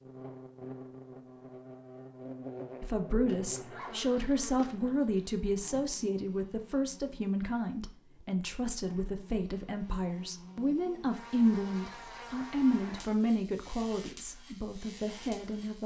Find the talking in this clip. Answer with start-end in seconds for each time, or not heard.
2.8-15.8.